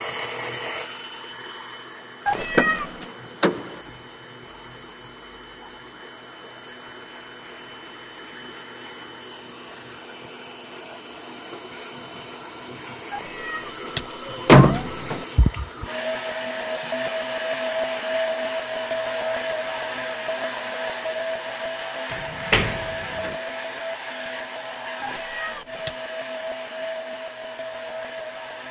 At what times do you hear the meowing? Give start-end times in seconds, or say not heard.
2.2-3.0, 13.1-14.8, 25.0-25.9.